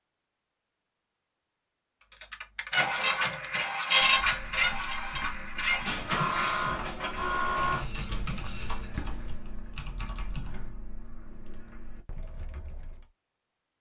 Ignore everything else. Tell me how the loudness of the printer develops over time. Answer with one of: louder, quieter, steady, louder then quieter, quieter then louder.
quieter.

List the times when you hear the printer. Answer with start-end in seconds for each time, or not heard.
2.7-9.4.